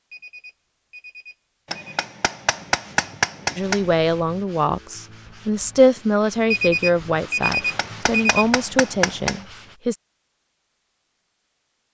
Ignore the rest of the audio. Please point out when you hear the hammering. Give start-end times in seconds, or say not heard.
1.7-3.9, 7.5-9.4.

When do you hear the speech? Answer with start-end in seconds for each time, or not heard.
3.5-9.9.